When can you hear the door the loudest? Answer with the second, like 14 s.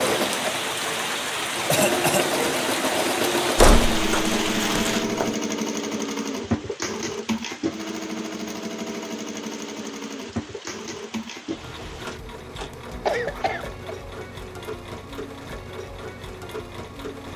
4 s.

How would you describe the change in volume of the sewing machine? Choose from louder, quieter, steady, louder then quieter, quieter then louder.
quieter.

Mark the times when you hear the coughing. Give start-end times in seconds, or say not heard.
1.6-2.3, 13.1-13.9.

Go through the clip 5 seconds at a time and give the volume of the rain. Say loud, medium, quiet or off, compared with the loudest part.
loud, quiet, quiet, off.